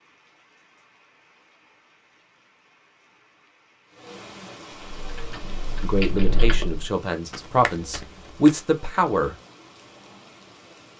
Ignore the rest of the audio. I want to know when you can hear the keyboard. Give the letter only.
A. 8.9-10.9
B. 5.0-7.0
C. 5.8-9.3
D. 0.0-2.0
B.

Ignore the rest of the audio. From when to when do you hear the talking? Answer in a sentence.
The talking can be heard from 5.8 to 9.3 s.